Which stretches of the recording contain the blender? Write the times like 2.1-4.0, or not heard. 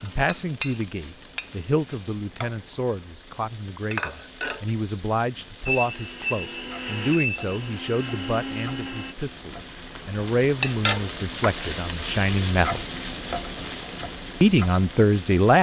5.7-9.2.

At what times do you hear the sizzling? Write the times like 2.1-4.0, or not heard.
0.0-15.5.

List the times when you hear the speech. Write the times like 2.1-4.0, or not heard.
0.0-12.8, 14.4-15.5.